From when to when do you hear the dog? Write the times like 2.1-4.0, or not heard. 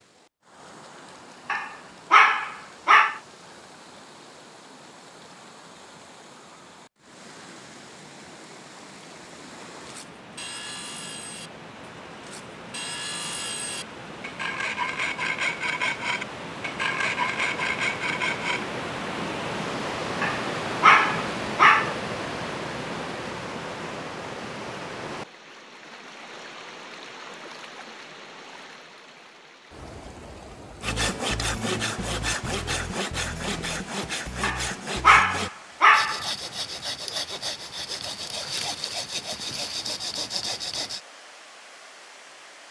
1.4-3.2, 20.2-21.9, 34.4-36.2.